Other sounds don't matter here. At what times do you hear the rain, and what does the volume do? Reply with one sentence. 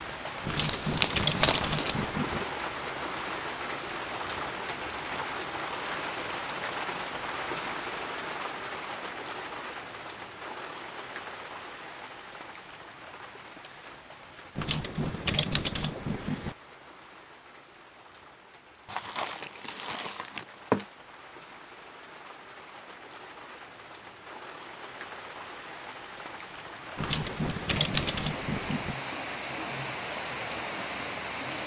You can hear the rain from 0.0 to 31.6 s, getting quieter then louder.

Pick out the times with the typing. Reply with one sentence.
The typing can be heard from 0.4 to 2.5 s, from 14.6 to 16.6 s and from 26.9 to 28.9 s.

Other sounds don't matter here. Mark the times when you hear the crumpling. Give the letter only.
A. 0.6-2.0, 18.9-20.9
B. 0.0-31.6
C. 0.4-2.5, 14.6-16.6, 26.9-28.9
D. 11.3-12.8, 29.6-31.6
A.